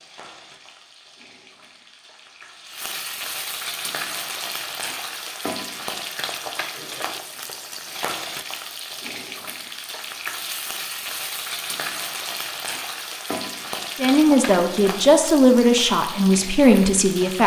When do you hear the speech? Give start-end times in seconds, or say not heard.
13.9-17.4.